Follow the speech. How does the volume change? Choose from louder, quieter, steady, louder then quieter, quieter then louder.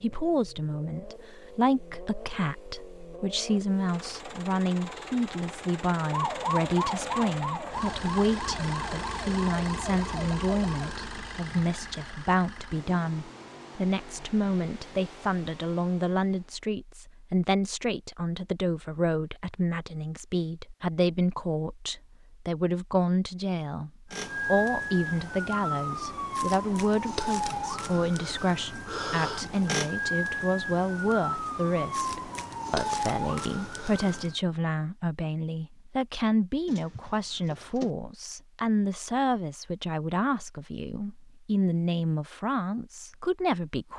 steady.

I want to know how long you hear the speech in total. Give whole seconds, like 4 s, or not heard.
44 s.